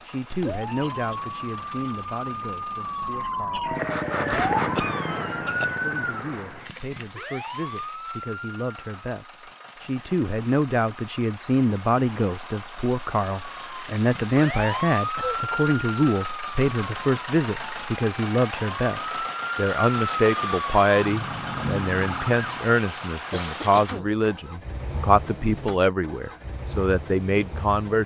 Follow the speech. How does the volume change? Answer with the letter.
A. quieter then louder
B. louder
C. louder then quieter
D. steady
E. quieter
B.